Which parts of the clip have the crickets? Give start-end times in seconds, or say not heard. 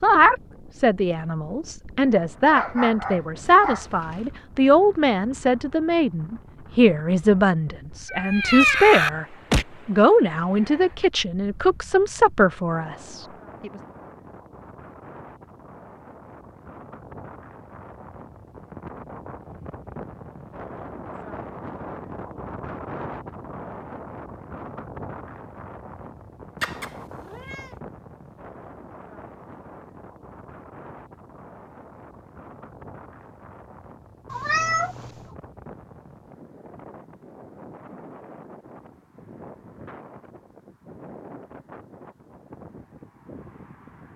not heard.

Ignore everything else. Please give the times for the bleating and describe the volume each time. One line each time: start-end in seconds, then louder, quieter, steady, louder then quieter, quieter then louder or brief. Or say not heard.
not heard.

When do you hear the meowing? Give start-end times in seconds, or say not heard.
8.1-9.7, 26.6-27.6, 34.3-35.1.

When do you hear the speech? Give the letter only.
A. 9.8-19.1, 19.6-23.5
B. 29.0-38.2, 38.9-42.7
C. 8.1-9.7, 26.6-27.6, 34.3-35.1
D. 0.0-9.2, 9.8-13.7
D.